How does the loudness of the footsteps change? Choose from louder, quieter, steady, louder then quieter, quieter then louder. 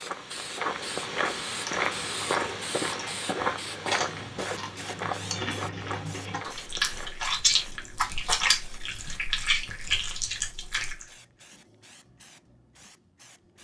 quieter.